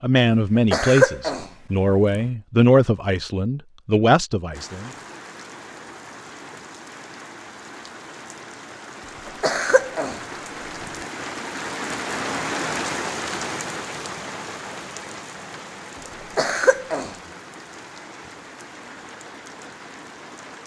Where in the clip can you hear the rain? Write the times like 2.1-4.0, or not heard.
4.5-20.6.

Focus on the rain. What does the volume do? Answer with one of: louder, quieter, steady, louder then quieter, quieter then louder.
louder then quieter.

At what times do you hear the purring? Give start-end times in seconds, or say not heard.
not heard.